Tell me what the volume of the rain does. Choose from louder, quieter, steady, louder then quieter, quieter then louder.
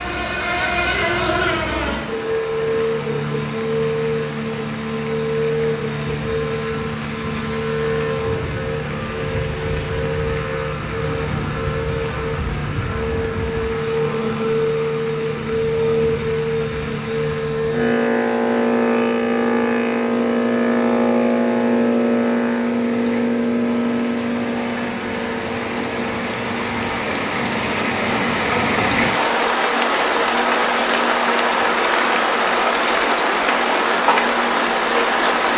louder.